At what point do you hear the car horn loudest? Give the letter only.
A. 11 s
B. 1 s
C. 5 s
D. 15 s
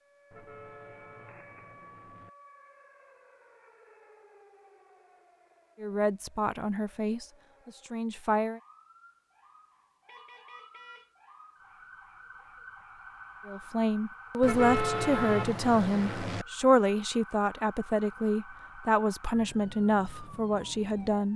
D.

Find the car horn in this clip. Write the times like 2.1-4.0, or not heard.
0.3-2.3, 10.1-11.1, 14.4-16.4.